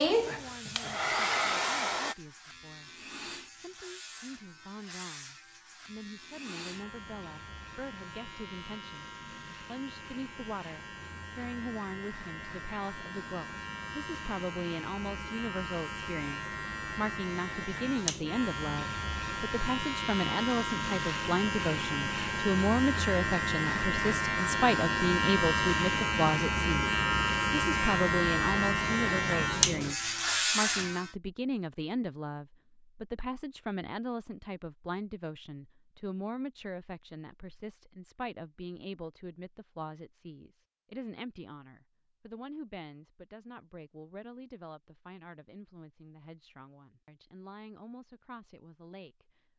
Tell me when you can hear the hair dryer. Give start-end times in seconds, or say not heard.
0.0-2.1.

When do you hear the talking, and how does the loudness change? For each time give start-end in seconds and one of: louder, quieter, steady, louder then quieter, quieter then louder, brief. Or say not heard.
0.2-49.4 louder then quieter.